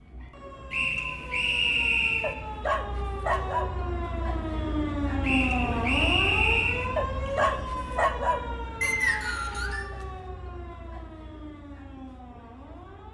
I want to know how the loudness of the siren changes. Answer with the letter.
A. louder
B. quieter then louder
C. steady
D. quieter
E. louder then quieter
E.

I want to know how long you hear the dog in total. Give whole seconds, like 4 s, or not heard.
3 s.